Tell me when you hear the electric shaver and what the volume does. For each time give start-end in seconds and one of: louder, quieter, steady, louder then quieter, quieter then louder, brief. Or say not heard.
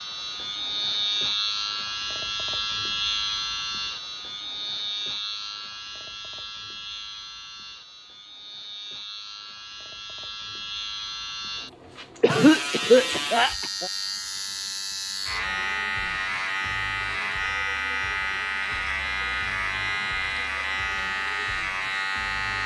0.0-22.6 quieter then louder.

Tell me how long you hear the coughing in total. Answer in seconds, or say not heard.
2 s.